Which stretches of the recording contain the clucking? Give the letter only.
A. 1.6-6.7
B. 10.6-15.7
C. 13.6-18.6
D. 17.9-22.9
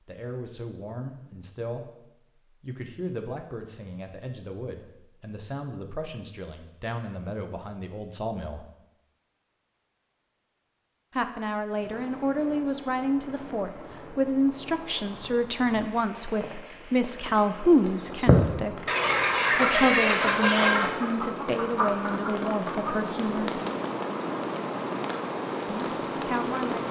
D.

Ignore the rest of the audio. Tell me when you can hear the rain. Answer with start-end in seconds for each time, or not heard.
11.7-26.8.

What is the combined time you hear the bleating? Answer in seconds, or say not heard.
not heard.